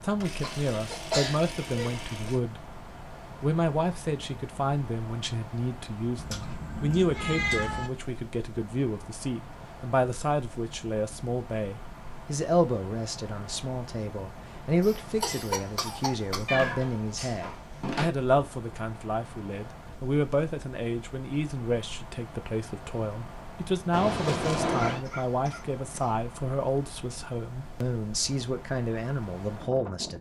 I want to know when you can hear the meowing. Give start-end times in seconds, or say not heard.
6.2-7.9, 16.4-18.1, 23.9-25.1.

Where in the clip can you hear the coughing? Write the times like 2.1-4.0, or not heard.
0.4-1.9, 14.8-16.6, 24.7-26.1.